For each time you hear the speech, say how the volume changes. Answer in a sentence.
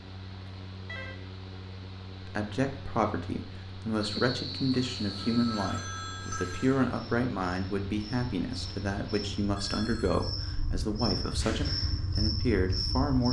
The speech can be heard from 2.2 to 13.2 s, at a steady volume.